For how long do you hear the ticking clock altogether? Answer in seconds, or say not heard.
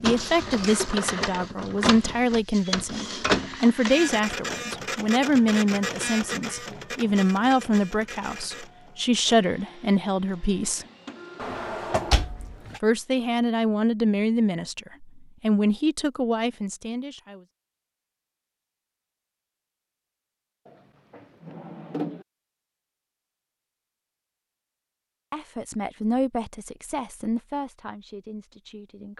not heard.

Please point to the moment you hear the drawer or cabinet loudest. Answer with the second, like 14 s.
12 s.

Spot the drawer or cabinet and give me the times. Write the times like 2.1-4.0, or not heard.
11.4-12.8, 20.6-22.2.